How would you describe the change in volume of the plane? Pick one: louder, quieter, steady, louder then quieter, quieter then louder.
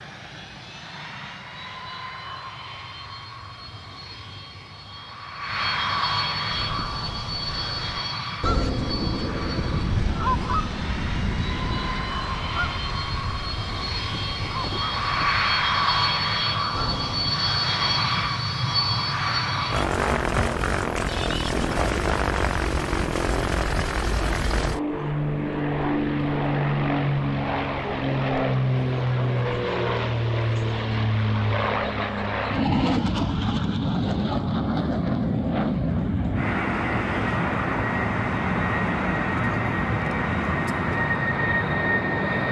louder.